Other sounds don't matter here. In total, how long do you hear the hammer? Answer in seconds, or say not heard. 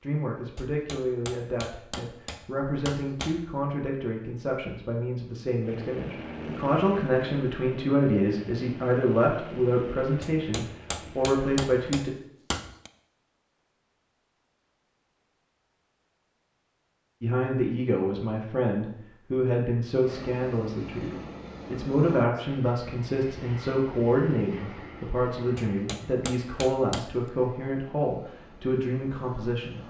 7 s.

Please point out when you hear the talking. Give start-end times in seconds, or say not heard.
0.0-12.1, 17.2-29.8.